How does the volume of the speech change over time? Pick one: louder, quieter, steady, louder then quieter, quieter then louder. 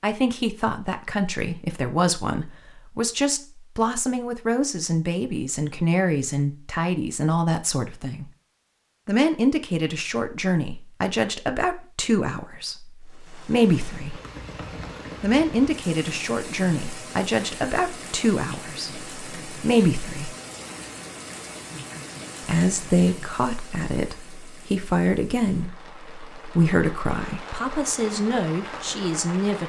steady.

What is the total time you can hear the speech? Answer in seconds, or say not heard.
26 s.